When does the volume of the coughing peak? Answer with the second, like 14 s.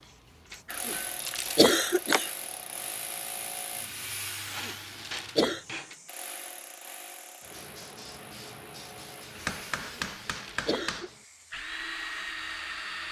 2 s.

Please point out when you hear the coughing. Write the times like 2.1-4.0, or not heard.
0.7-2.3, 4.5-5.7, 9.8-11.1.